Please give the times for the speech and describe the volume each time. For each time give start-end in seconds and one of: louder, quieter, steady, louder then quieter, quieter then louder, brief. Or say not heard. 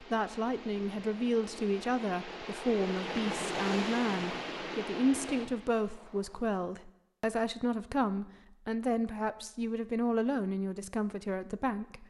0.0-12.0 steady.